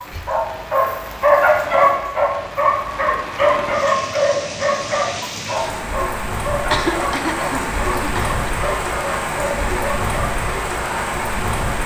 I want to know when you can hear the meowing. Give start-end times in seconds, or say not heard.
not heard.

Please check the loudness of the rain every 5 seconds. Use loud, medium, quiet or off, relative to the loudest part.
medium, loud, loud.